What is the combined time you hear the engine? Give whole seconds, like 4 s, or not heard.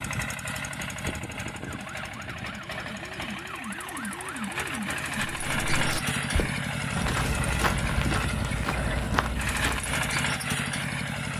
11 s.